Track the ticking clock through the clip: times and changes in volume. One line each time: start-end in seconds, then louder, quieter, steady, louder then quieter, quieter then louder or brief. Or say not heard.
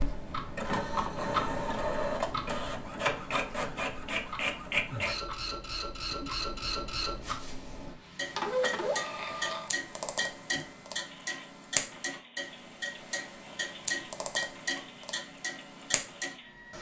0.0-16.7 quieter then louder.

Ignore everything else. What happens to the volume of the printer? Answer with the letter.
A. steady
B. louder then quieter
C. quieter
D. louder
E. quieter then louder
C.